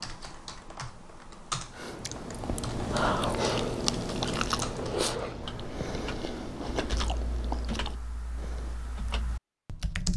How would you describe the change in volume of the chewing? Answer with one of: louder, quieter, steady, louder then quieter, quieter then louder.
quieter.